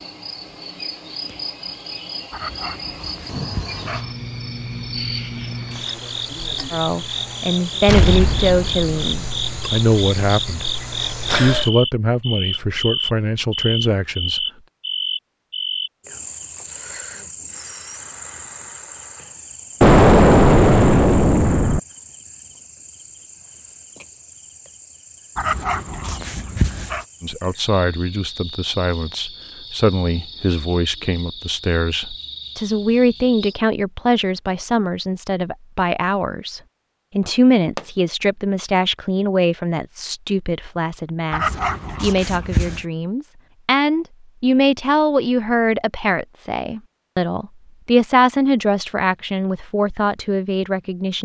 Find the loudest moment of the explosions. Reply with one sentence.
The volume of the explosions peaks at 20 seconds.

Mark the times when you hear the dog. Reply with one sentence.
The dog can be heard from 2.3 to 4.2 s, from 25.4 to 27.1 s and from 41.3 to 42.9 s.